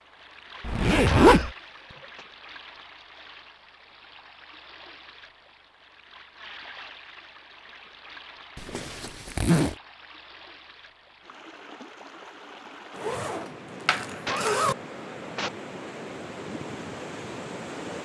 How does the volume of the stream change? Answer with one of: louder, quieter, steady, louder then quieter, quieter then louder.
louder.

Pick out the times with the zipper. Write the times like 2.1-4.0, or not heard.
0.7-1.5, 8.6-9.8, 12.9-14.8.